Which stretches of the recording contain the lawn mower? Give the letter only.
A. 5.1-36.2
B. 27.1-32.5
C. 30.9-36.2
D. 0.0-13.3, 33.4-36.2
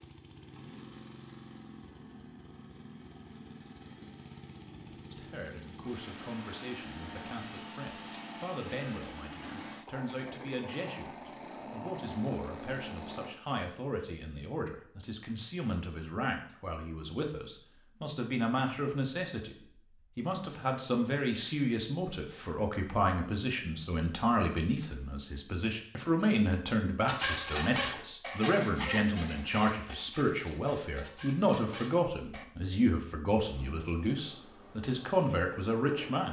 D.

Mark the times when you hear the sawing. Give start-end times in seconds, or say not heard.
27.1-32.5.